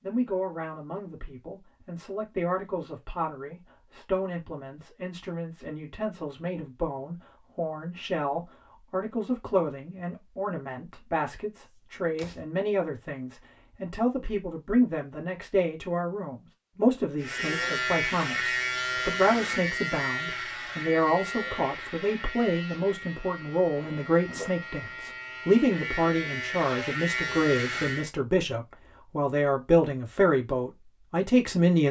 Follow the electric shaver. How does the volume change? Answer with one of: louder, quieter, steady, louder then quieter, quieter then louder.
quieter then louder.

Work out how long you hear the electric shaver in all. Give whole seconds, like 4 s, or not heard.
11 s.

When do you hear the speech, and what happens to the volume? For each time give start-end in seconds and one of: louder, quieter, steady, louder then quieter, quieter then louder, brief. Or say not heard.
0.0-31.8 louder.